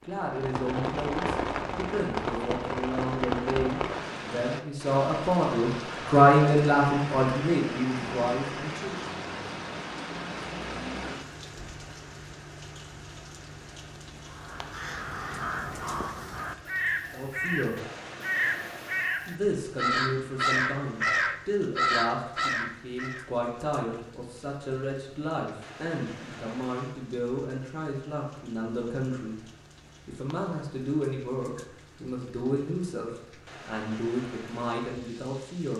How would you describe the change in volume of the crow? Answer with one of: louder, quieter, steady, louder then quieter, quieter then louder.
louder.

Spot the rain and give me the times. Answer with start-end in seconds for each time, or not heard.
0.0-35.7.